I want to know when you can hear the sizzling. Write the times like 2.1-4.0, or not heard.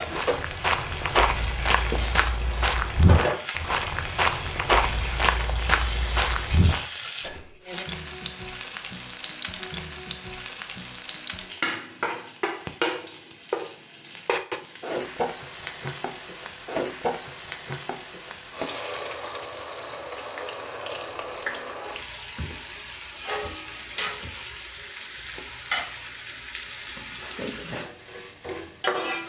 0.0-29.2.